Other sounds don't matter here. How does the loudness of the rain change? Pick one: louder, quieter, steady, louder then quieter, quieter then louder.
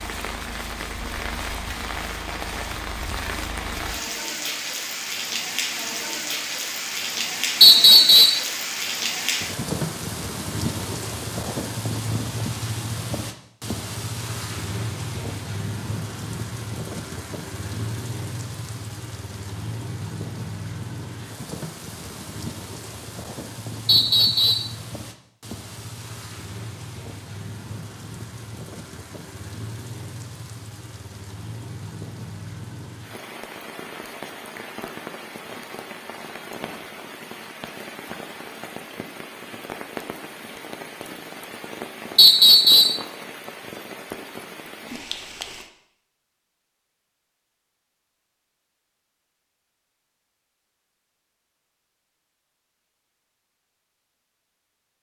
quieter.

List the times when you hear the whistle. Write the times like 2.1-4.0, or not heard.
7.6-8.4, 23.9-24.7, 42.1-43.0.